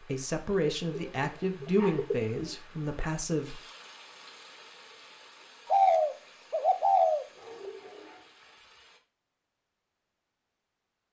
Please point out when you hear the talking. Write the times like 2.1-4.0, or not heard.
0.0-3.6.